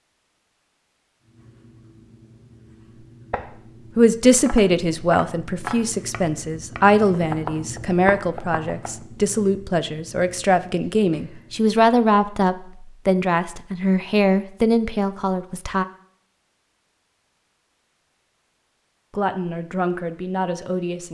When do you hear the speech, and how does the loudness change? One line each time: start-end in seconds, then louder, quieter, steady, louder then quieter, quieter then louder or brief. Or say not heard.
4.0-15.8 steady
19.1-21.0 brief.